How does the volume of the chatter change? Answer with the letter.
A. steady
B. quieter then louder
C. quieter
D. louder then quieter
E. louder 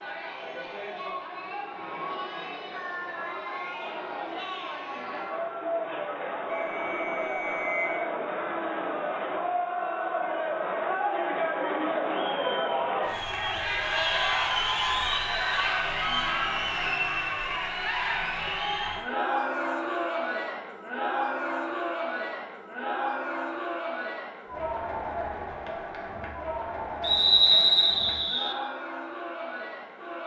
D.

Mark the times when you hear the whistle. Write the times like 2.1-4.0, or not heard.
6.5-8.1, 27.0-28.6.